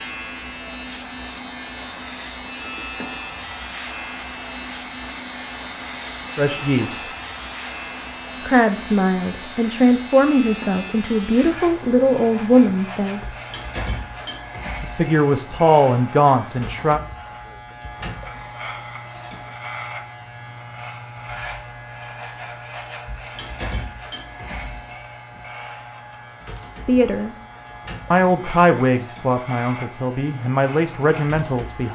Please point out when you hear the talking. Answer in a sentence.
You can hear the talking from 6.3 to 7.0 s, from 8.4 to 13.2 s, from 14.8 to 17.0 s, from 26.9 to 27.4 s and from 28.1 to 31.8 s.